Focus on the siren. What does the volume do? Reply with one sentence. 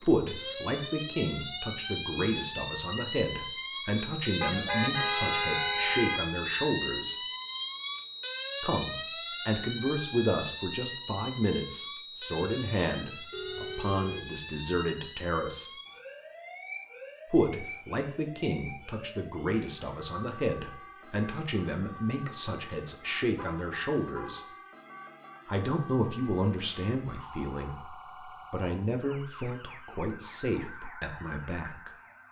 The loudness of the siren goes down.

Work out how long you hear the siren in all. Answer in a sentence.
You can hear the siren for 32 seconds altogether.